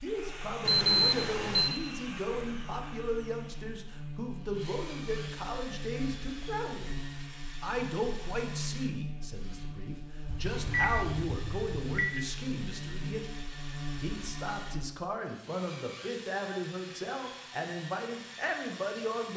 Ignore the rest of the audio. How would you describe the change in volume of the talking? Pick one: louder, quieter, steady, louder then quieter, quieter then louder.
steady.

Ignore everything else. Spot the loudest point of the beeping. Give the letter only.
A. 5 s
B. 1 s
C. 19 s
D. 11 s
B.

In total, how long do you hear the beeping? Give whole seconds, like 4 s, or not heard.
3 s.